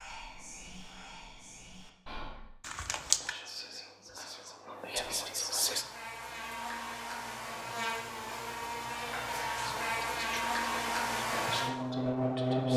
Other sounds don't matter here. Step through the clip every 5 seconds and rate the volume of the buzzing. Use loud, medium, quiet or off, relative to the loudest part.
off, medium, loud.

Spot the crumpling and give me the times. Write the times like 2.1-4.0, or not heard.
2.6-3.4.